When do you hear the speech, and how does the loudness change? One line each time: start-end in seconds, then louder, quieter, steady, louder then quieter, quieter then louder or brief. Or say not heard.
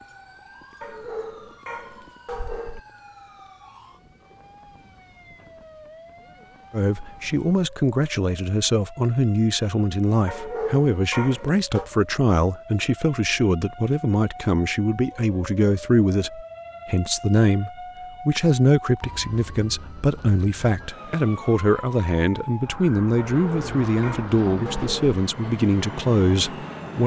6.7-27.0 steady.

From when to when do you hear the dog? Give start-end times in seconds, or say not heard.
0.8-2.8, 10.2-11.9, 23.1-25.1.